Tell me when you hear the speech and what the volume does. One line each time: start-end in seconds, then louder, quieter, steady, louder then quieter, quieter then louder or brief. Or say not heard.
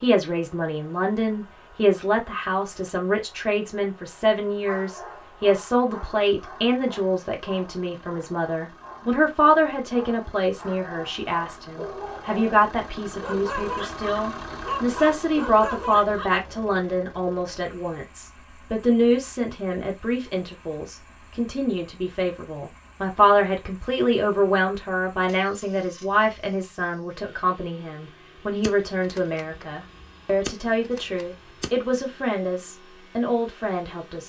0.0-34.2 steady.